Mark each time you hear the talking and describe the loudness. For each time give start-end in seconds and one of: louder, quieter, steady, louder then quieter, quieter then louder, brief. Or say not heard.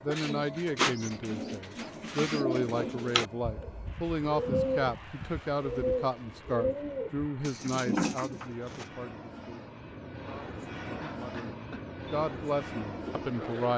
0.0-13.7 quieter then louder.